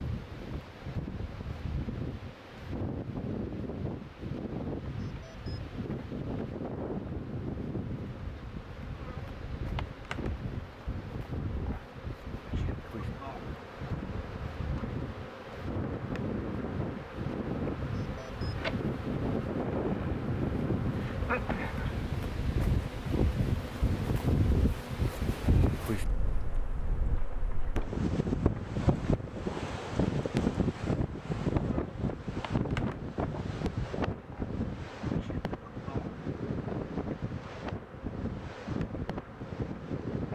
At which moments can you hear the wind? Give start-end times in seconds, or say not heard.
0.0-40.3.